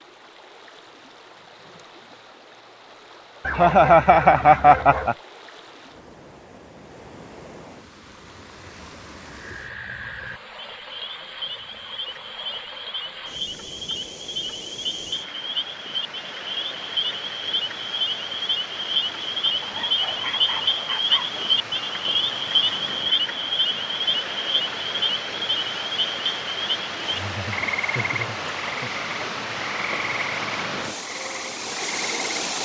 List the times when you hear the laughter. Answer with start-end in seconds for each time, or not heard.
3.5-5.2, 27.0-28.9.